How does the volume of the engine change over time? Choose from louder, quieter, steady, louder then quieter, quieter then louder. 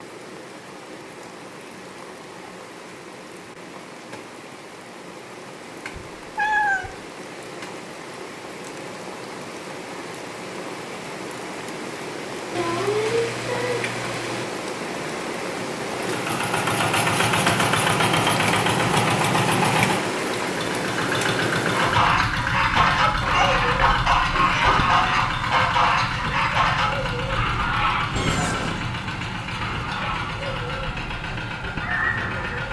quieter.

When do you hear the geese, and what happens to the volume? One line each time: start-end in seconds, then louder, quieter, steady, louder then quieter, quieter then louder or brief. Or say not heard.
21.7-32.6 quieter.